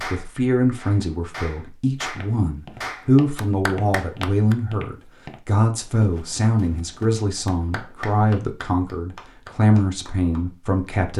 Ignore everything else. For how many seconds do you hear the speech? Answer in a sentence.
The speech can be heard for 11 seconds in total.